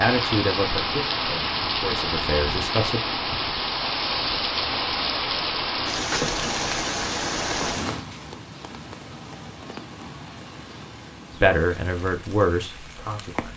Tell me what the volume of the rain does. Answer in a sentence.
The loudness of the rain goes down.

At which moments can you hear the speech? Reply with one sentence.
The speech can be heard from 0.0 to 3.0 s and from 11.4 to 13.5 s.